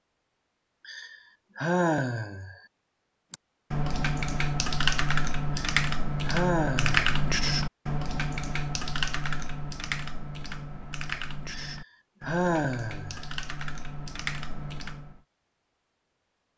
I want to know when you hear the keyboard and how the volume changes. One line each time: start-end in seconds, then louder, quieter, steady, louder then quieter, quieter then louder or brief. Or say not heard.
3.3-15.2 quieter.